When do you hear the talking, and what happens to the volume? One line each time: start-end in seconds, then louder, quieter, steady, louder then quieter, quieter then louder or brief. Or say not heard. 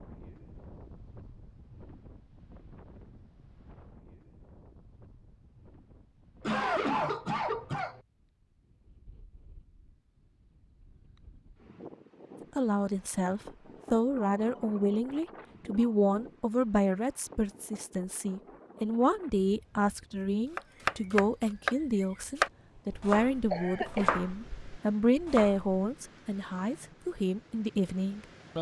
12.6-28.5 steady.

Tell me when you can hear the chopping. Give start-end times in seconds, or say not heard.
20.6-25.8.